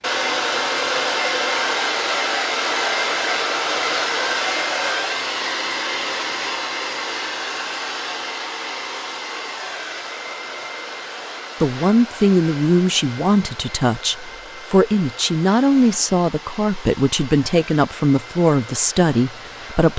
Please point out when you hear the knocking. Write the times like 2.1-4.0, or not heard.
not heard.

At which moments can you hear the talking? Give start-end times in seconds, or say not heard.
11.6-19.9.